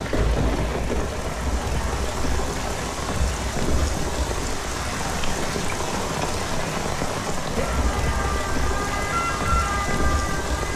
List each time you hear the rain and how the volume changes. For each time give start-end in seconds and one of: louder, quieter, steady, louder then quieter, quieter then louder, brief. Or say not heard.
0.0-10.7 steady.